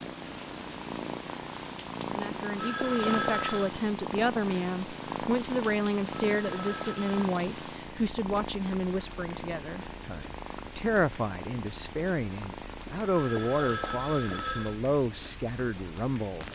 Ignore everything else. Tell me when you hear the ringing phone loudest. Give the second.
3 s.